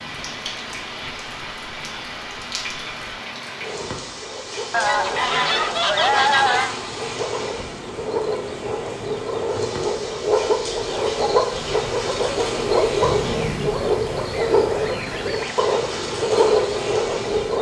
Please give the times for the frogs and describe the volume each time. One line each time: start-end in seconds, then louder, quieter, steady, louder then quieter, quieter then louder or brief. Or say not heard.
0.0-17.5 louder.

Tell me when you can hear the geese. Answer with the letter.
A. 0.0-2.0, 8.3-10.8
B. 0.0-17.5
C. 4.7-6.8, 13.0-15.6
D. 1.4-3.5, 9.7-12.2
C.